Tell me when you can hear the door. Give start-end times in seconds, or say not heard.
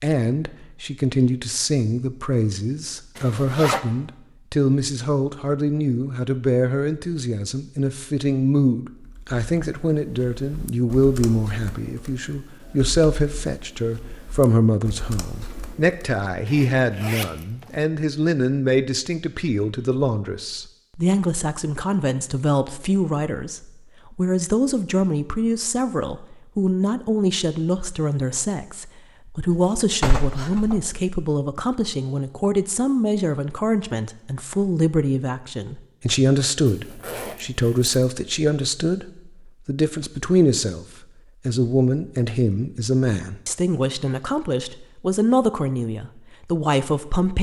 29.5-30.9.